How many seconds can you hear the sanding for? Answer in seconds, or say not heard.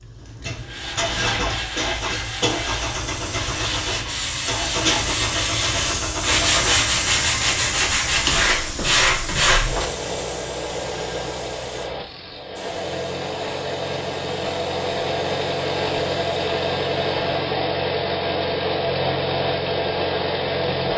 9 s.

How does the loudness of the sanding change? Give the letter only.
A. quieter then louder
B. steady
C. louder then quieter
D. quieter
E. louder
E.